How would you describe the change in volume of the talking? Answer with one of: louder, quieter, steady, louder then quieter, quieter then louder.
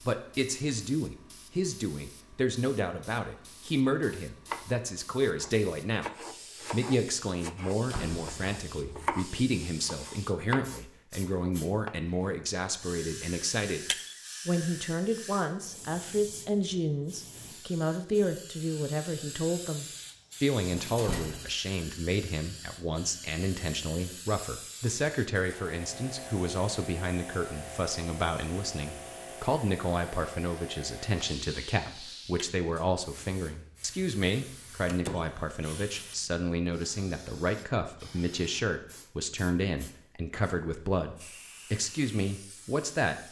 steady.